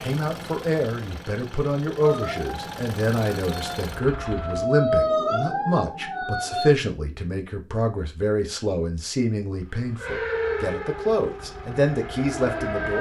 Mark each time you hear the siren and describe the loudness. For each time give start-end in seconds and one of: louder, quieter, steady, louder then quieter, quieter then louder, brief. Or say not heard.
2.0-6.7 louder then quieter
9.9-12.9 brief.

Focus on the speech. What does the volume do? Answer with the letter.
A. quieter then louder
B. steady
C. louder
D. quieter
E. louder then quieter
B.